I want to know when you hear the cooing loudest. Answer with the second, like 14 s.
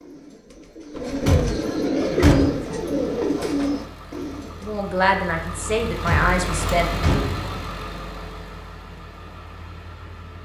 2 s.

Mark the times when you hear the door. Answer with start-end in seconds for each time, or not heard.
0.9-2.6, 5.8-7.5.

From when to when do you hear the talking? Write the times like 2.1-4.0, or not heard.
4.6-7.1.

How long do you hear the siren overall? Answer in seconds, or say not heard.
not heard.